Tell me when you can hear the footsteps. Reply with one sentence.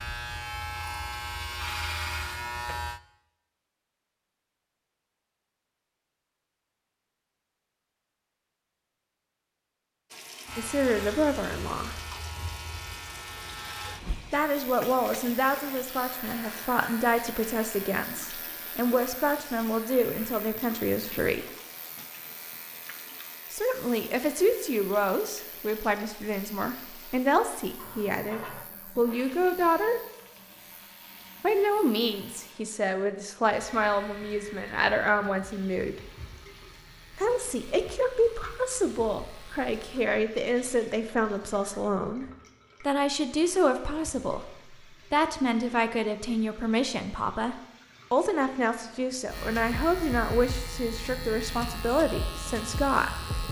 The footsteps can't be heard in this clip.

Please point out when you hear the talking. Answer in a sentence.
You can hear the talking from 10.6 to 11.9 s, from 14.3 to 21.4 s, from 23.5 to 30.0 s, from 31.4 to 36.0 s and from 37.1 to 53.4 s.